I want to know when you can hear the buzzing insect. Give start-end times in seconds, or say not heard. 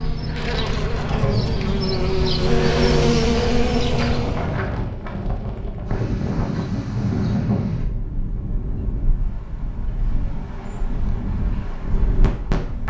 0.0-4.7.